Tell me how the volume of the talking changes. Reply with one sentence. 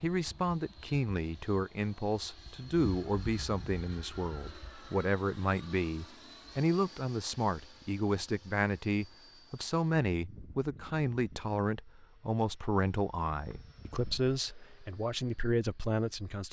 The volume of the talking stays about the same.